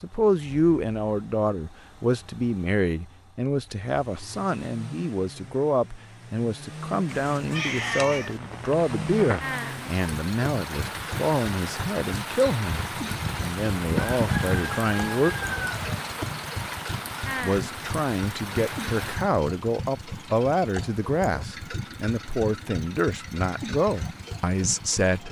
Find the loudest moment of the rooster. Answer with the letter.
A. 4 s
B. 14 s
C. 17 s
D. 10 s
B.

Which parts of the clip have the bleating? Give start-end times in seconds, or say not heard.
not heard.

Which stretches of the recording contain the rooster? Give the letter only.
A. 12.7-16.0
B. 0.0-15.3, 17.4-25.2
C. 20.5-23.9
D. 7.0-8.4
A.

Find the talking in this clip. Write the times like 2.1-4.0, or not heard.
0.0-15.3, 17.4-25.2.